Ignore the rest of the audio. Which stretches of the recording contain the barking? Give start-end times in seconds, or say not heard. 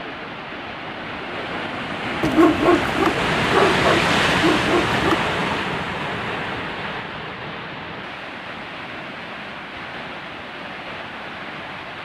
2.2-5.2.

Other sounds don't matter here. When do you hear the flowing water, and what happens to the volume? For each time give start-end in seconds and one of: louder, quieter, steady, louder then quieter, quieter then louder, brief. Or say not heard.
0.0-12.0 louder then quieter.